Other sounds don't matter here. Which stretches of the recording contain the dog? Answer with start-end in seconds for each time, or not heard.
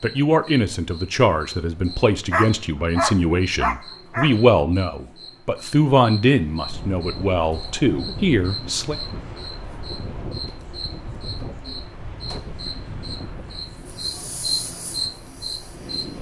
2.3-4.3.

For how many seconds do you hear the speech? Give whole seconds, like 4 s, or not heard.
9 s.